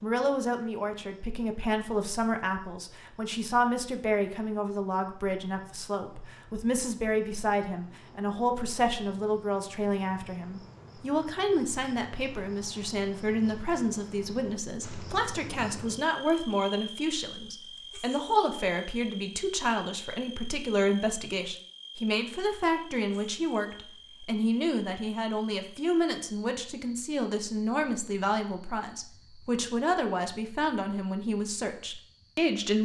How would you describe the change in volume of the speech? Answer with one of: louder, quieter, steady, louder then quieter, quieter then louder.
steady.